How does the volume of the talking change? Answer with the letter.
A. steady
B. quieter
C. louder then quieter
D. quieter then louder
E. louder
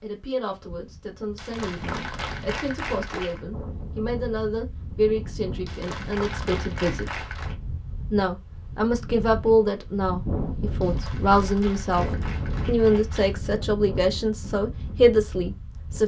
E.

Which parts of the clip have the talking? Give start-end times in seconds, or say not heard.
0.0-7.1, 8.1-12.1, 12.7-16.0.